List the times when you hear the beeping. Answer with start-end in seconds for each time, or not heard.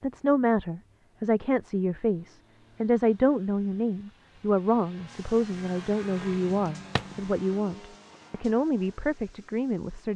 not heard.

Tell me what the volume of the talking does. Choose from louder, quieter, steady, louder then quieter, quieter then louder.
steady.